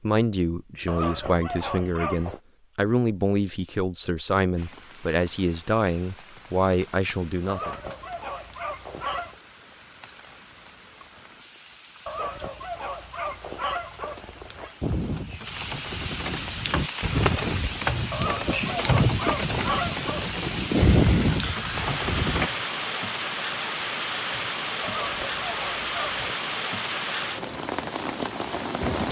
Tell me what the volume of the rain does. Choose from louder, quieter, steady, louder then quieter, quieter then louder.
louder.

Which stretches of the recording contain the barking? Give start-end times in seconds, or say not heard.
0.8-2.4, 7.5-9.3, 12.1-14.8, 18.1-20.7, 24.8-26.3.